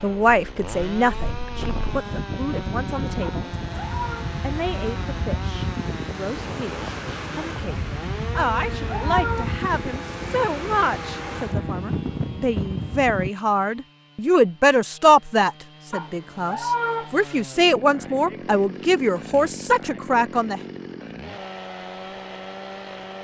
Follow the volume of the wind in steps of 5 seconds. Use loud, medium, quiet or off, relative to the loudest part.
loud, loud, loud, off, off.